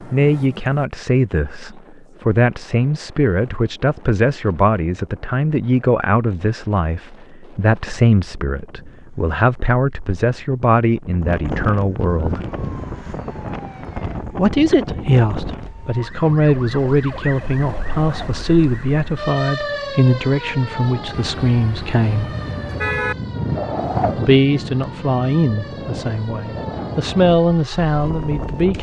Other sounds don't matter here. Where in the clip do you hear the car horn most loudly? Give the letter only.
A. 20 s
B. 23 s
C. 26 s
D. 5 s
B.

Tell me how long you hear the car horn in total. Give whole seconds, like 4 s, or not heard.
2 s.